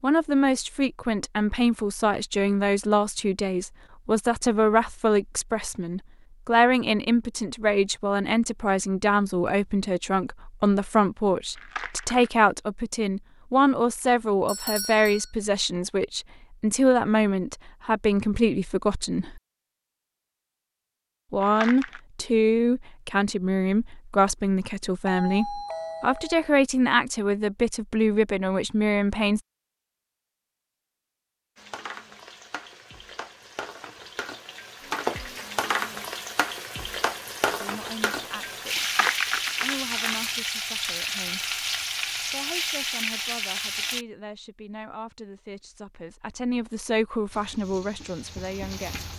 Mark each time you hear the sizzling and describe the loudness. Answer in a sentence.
You can hear the sizzling from 31.6 to 44.0 s, getting louder; and briefly from 47.3 to 49.1 s.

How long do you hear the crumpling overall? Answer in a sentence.
The crumpling can be heard for 3 seconds in total.